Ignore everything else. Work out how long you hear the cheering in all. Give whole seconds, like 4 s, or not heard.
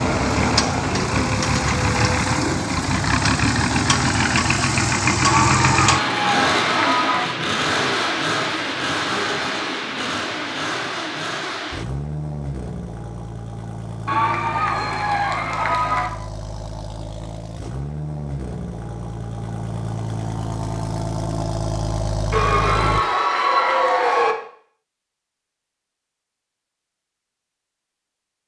6 s.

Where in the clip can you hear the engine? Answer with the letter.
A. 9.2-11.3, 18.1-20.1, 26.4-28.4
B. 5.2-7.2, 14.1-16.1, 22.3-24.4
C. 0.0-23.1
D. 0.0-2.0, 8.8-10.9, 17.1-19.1
C.